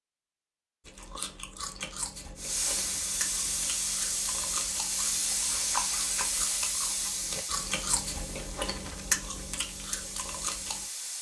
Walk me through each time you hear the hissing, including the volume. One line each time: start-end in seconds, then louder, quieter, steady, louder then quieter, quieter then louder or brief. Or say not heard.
2.4-11.1 quieter.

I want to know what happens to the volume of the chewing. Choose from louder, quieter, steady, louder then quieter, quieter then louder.
louder.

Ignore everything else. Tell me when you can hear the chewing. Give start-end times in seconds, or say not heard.
0.8-10.8.